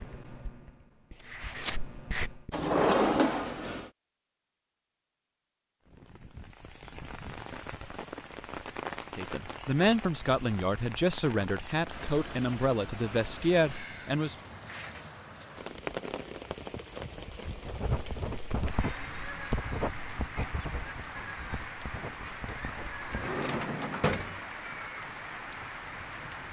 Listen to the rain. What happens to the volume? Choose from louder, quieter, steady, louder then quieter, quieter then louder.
steady.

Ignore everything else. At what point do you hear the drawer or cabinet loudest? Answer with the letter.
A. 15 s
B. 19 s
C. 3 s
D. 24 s
C.